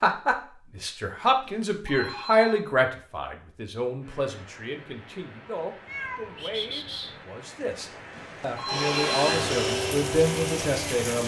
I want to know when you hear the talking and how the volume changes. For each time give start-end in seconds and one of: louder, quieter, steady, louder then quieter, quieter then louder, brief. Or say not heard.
0.0-11.2 quieter then louder.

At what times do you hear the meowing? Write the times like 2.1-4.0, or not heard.
5.8-7.2.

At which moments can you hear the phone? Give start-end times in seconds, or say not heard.
1.4-2.6, 8.1-9.5.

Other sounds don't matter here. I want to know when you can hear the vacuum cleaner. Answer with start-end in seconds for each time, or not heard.
8.7-11.2.